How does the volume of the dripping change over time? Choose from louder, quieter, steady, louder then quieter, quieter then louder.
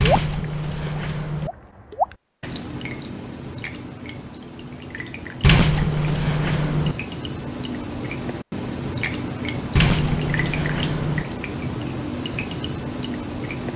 quieter then louder.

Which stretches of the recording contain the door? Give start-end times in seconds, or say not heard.
0.0-1.5, 5.4-7.0, 9.8-11.2.